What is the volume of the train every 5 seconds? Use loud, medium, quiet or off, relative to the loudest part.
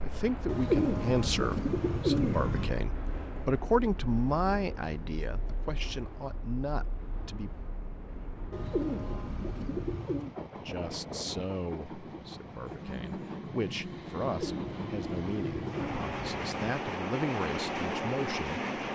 medium, quiet, medium, loud.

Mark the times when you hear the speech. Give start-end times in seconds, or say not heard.
0.0-7.5, 10.7-18.6.